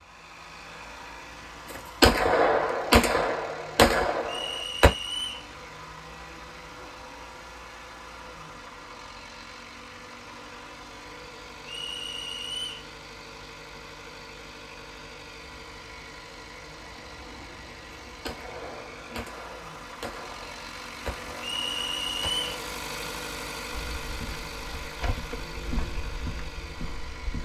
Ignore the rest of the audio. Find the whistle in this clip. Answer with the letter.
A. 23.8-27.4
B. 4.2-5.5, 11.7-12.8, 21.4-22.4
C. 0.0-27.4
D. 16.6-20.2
B.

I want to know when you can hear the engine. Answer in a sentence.
The engine can be heard from 0.0 to 27.4 s.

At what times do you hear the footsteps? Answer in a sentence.
The footsteps can be heard from 23.8 to 27.4 s.